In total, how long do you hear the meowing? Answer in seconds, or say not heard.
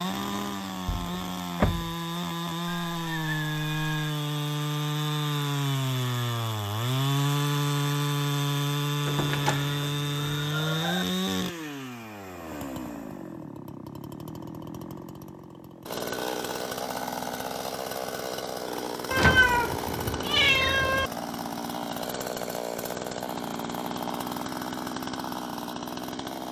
5 s.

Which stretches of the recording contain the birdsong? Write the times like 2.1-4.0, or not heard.
not heard.